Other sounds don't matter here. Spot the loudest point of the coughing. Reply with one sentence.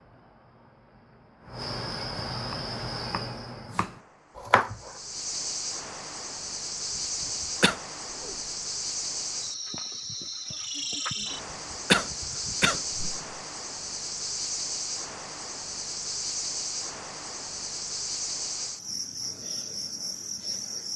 The loudest moment of the coughing is at 12 seconds.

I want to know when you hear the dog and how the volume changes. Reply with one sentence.
You can't hear the dog here.